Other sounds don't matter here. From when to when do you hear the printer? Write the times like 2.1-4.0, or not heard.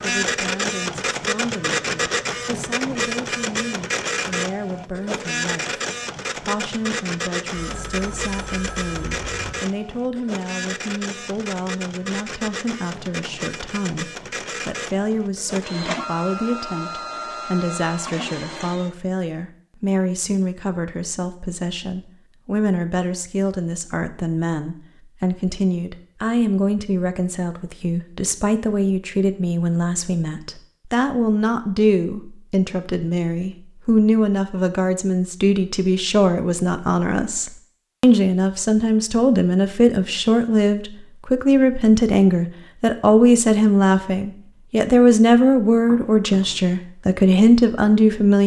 0.0-18.9.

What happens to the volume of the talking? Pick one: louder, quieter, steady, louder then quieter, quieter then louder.
louder.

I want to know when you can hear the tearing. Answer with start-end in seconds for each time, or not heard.
not heard.